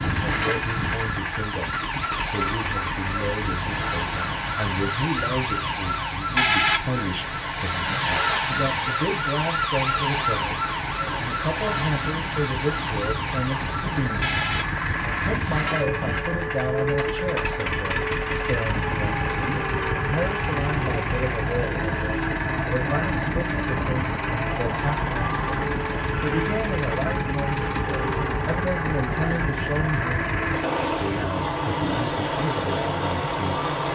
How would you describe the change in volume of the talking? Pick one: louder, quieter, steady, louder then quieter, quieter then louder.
steady.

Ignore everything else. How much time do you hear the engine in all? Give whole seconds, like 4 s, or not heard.
34 s.